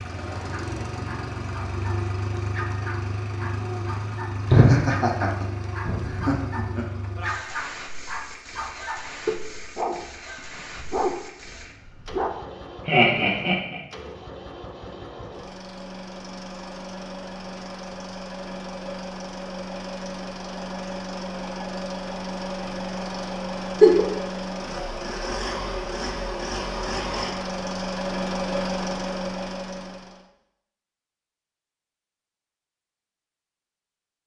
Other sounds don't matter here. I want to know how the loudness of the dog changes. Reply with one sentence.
The volume of the dog goes up.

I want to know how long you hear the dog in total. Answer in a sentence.
You can hear the dog for 12 seconds altogether.